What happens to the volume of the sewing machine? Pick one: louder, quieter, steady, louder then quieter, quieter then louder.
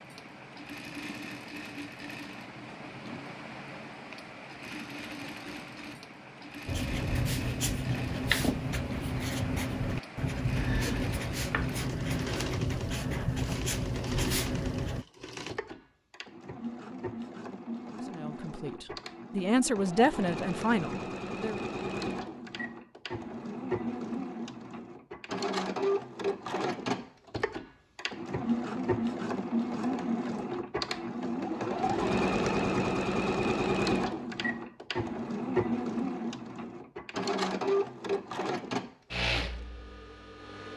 louder.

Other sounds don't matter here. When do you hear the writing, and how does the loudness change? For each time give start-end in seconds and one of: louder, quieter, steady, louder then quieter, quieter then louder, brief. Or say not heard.
6.7-15.1 steady.